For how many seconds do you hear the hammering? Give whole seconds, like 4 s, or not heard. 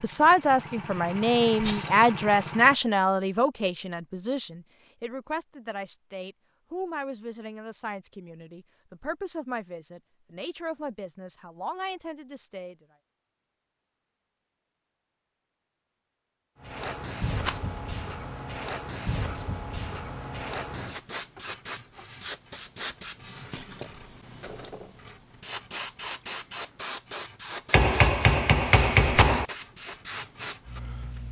2 s.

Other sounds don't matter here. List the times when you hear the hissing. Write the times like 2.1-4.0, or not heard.
16.6-31.2.